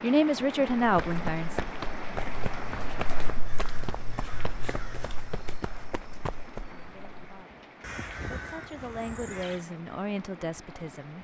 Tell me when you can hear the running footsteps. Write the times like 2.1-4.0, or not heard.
0.8-6.8.